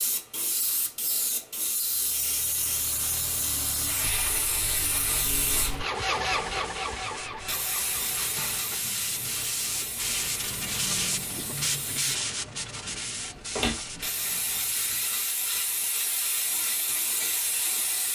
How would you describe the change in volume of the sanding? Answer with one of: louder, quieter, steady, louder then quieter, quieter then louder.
louder then quieter.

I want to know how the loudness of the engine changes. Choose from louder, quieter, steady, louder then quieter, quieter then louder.
louder then quieter.